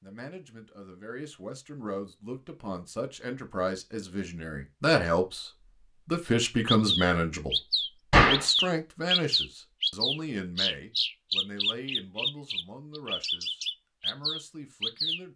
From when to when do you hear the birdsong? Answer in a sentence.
The birdsong can be heard from 6.7 to 15.2 s.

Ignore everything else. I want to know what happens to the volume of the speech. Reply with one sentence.
The volume of the speech goes up, then down.